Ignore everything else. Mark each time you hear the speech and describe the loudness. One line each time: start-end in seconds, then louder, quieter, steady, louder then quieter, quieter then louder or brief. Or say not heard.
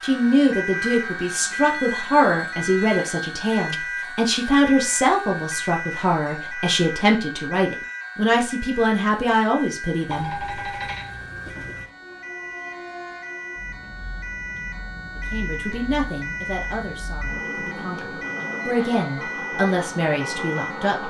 0.0-10.3 steady
15.3-21.0 quieter then louder.